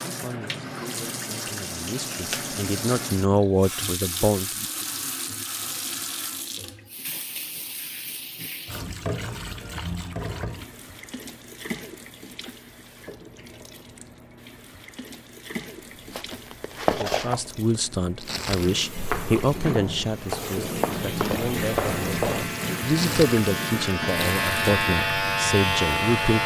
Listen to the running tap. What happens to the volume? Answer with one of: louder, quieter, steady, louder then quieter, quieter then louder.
quieter then louder.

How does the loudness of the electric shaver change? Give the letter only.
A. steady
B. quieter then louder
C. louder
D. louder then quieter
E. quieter
C.